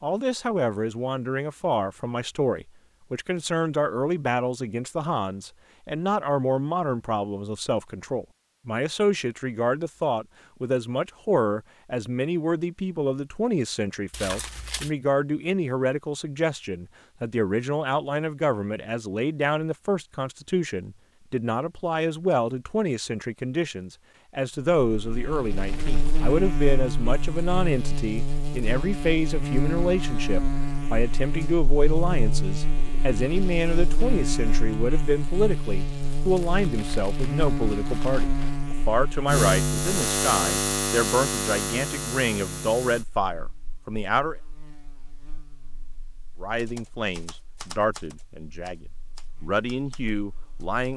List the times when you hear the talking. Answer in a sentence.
You can hear the talking from 0.0 to 44.4 s and from 46.4 to 50.9 s.